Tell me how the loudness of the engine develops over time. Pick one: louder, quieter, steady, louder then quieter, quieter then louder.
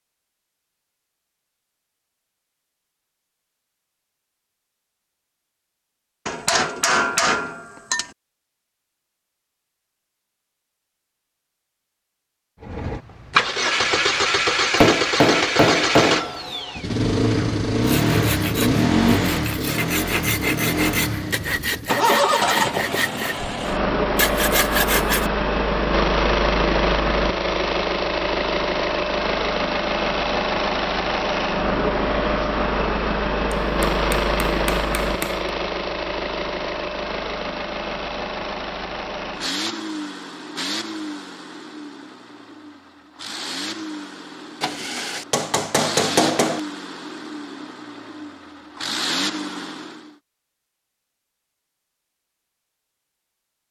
quieter.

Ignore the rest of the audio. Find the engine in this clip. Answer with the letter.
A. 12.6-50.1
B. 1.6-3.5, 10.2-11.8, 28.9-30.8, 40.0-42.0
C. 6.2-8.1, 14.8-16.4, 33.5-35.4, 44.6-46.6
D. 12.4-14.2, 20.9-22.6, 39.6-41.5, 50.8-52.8
A.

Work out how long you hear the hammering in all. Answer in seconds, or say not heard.
7 s.